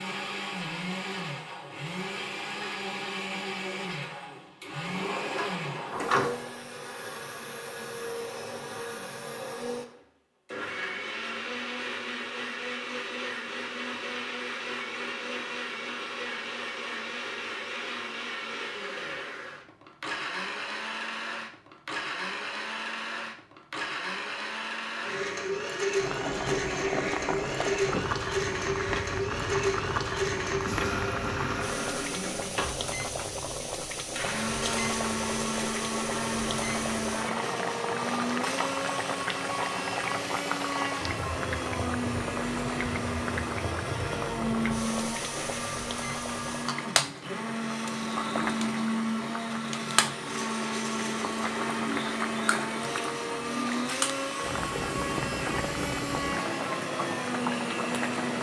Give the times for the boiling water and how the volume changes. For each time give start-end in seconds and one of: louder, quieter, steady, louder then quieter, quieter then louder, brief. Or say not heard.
25.9-58.3 steady.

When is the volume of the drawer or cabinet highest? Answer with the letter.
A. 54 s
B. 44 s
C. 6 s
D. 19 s
C.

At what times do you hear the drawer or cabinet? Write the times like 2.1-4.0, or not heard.
4.8-6.3.